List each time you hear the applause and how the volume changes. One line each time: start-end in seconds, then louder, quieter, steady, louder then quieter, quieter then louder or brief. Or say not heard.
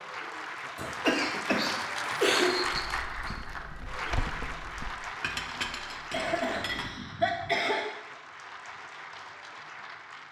0.0-10.2 quieter.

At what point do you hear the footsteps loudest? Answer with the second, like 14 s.
4 s.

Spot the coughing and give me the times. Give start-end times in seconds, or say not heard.
0.8-2.5, 6.1-7.8.